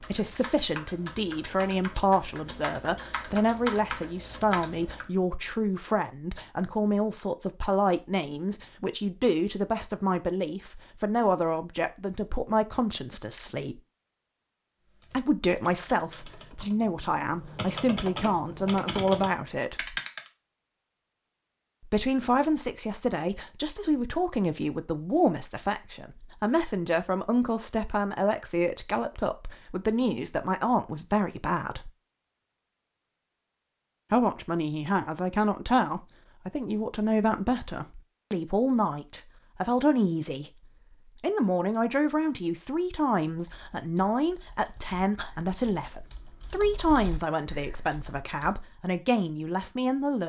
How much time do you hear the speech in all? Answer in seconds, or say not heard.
44 s.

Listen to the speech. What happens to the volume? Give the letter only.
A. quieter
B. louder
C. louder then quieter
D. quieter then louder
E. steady
E.